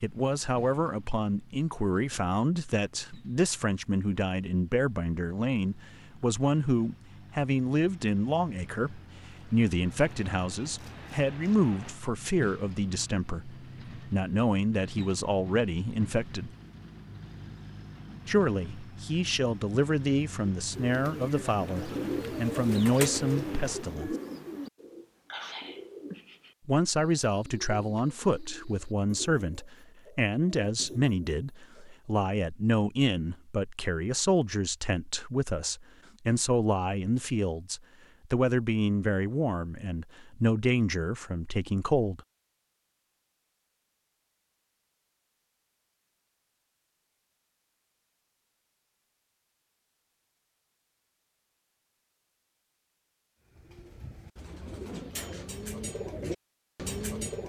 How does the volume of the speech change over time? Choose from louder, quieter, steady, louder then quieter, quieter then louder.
steady.